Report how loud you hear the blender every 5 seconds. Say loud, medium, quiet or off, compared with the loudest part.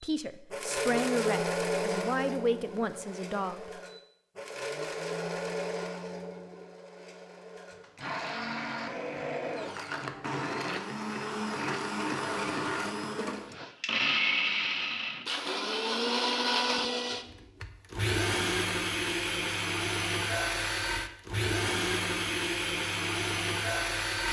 loud, medium, loud, loud, loud.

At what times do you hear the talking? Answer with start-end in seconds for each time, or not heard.
0.0-3.7.